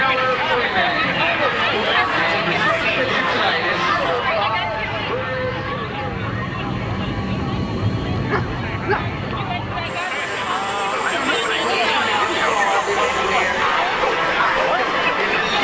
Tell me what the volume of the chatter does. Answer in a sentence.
The volume of the chatter goes down, then up.